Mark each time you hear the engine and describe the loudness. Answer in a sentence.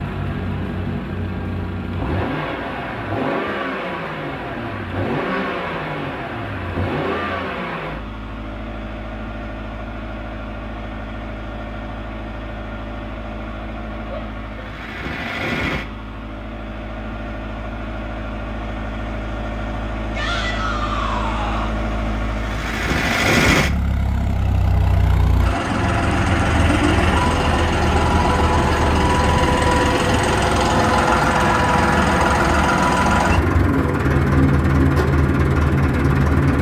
The engine can be heard from 0.0 to 36.5 s, getting quieter then louder.